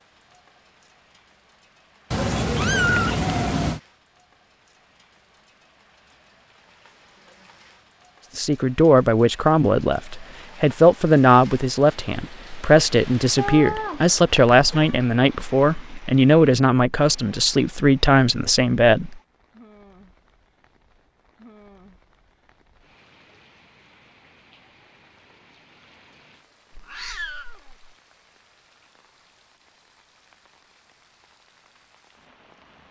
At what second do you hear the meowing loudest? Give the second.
3 s.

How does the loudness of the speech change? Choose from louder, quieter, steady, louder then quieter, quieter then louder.
steady.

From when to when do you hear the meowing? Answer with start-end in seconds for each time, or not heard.
2.1-3.8, 13.3-15.0, 26.7-27.9.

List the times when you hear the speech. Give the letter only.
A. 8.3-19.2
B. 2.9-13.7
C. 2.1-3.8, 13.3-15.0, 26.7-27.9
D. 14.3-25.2
A.